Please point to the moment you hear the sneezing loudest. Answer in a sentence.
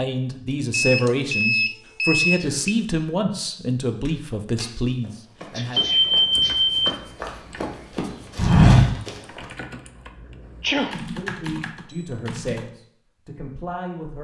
The volume of the sneezing peaks at 11 seconds.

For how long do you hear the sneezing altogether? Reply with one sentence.
You can hear the sneezing for 2 seconds altogether.